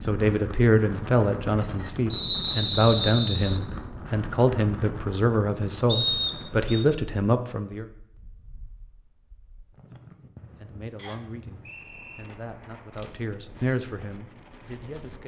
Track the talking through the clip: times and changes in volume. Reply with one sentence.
You can hear the talking from 0.0 to 7.8 s, at a steady volume; and from 10.6 to 15.2 s, getting louder then quieter.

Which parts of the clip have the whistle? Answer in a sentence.
The whistle can be heard from 2.1 to 3.6 s, from 5.8 to 6.8 s and from 10.9 to 12.2 s.